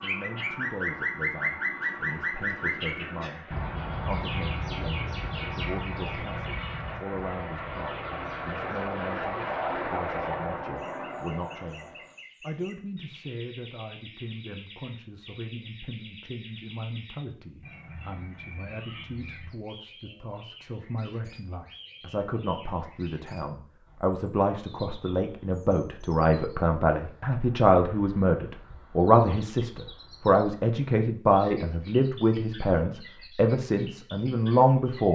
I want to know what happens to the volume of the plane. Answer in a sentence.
The volume of the plane goes up.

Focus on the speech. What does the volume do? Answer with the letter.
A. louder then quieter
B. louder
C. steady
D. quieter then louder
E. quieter
B.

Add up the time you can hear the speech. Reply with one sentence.
You can hear the speech for 35 seconds altogether.